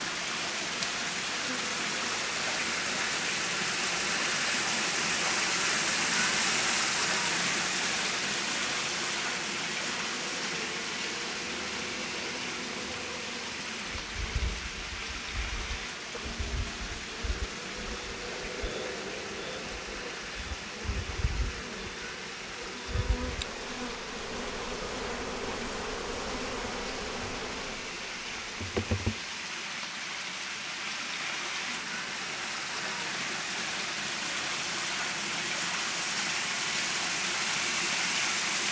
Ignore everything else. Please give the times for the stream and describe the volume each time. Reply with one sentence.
The stream can be heard from 0.0 to 38.6 s, getting quieter then louder.